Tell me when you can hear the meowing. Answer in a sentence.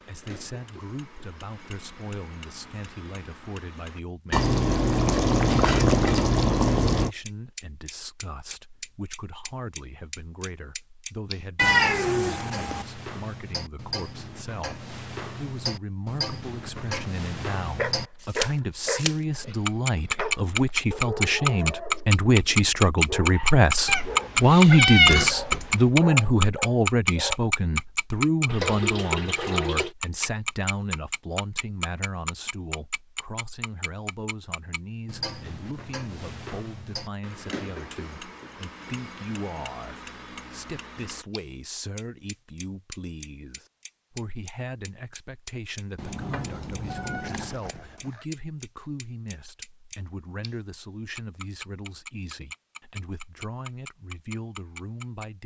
The meowing can be heard from 11.6 to 12.8 s, from 23.9 to 25.8 s and from 46.9 to 48.2 s.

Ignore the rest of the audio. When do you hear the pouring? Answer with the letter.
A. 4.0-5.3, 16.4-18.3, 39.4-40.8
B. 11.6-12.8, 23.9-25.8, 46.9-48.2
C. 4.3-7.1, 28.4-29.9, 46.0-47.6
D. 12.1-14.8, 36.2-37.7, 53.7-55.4
C.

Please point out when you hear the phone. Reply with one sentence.
You can't hear the phone here.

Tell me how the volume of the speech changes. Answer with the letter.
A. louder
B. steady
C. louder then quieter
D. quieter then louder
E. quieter
C.